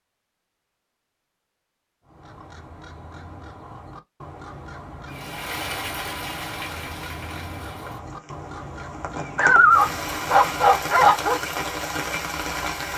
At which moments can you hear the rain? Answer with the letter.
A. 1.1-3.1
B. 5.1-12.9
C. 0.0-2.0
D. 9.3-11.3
B.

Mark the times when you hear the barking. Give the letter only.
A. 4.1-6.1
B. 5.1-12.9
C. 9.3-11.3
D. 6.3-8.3
C.